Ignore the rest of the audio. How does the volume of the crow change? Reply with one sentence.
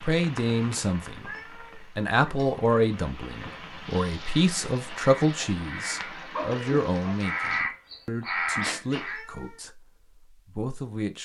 The loudness of the crow goes up.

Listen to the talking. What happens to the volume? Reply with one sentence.
The volume of the talking goes down.